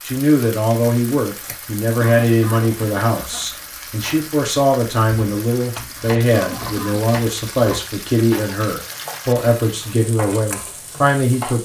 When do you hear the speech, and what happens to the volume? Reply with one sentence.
The speech can be heard from 0.0 to 11.6 s, at a steady volume.